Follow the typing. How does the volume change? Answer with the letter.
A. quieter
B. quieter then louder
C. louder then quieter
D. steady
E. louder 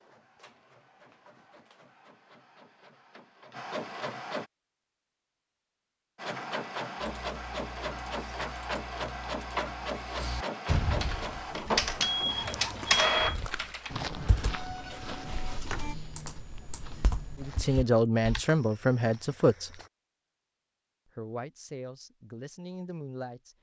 C.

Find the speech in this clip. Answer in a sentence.
The speech can be heard from 17.4 to 19.7 s and from 21.1 to 23.5 s.